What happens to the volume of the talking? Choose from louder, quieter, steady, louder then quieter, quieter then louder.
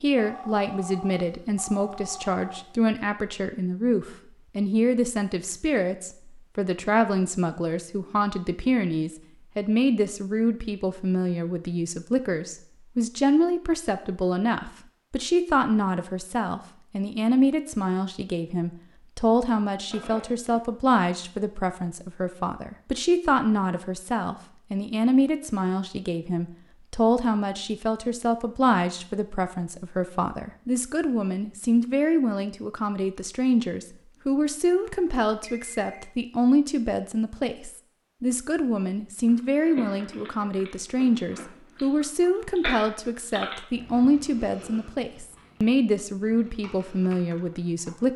steady.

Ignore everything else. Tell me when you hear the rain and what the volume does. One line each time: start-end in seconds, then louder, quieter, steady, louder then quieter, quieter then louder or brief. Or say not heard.
not heard.